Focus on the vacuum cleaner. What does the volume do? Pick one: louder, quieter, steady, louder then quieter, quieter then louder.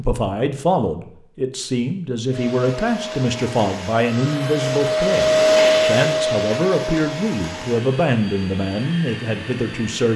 louder then quieter.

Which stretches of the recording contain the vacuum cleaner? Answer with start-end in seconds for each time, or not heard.
2.3-10.1.